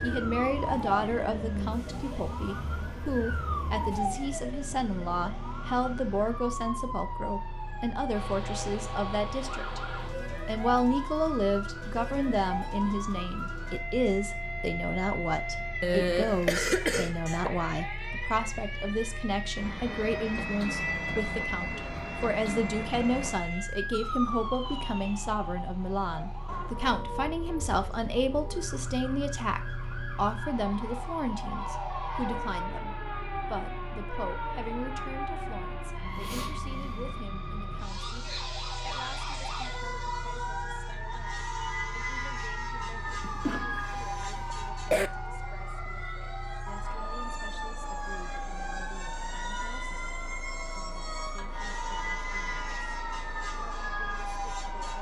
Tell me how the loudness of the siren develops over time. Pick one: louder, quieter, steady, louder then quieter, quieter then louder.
steady.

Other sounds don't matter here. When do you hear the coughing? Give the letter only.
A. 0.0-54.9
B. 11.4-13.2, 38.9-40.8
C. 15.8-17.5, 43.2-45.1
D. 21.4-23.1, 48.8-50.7
C.